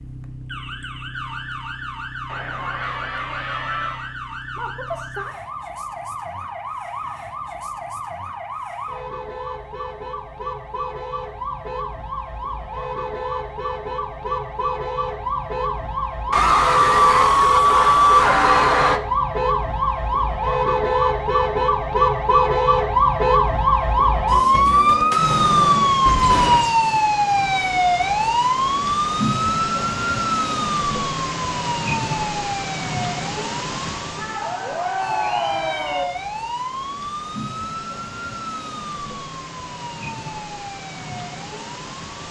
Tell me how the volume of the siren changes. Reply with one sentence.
The volume of the siren goes up, then down.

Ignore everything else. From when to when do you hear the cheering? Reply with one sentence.
The cheering can be heard from 2.2 to 4.1 s, from 16.3 to 19.0 s and from 34.1 to 36.0 s.